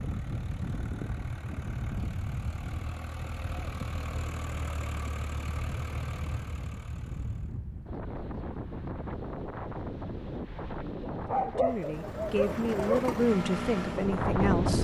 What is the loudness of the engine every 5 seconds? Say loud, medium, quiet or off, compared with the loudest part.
medium, medium, loud.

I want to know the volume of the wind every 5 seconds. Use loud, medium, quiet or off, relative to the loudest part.
medium, medium, loud.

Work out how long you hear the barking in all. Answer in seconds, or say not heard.
2 s.